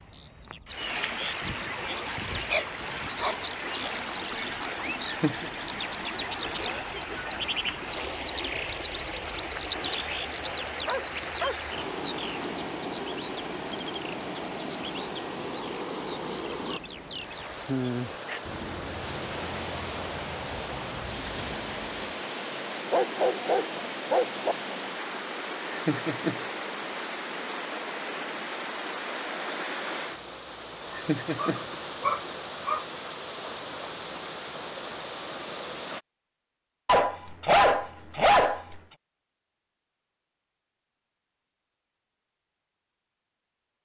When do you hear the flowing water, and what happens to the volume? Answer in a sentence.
The flowing water can be heard from 0.0 to 36.0 s, at a steady volume.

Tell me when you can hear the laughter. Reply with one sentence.
You can hear the laughter from 5.0 to 5.5 s, from 25.7 to 26.4 s and from 30.9 to 31.6 s.